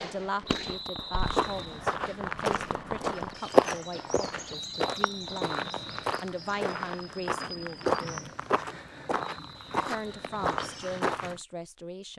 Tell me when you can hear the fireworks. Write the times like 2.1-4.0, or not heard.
0.0-3.4.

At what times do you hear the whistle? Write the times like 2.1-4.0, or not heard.
0.5-1.9, 4.5-6.2, 9.2-10.4.